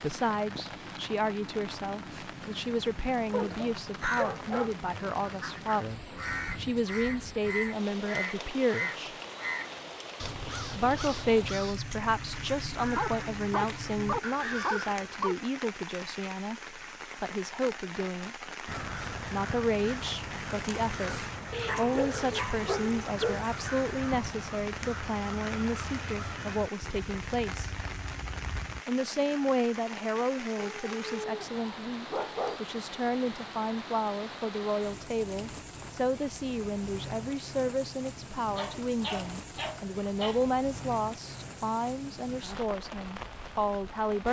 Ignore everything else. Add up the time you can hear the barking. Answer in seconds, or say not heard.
10 s.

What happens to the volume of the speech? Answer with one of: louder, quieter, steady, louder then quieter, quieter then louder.
steady.